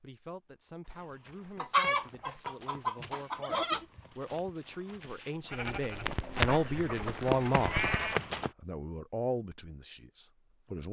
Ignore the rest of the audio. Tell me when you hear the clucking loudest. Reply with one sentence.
The loudest moment of the clucking is at 2 seconds.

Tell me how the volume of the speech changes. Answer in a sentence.
The volume of the speech goes up, then down.